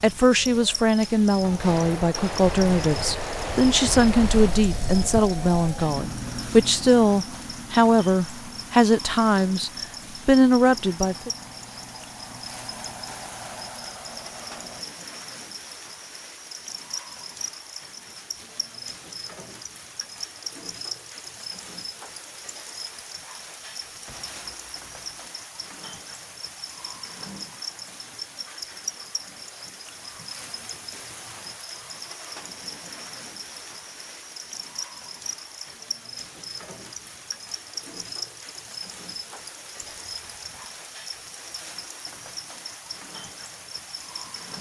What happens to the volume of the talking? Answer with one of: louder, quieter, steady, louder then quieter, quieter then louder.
steady.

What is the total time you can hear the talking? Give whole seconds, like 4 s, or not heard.
11 s.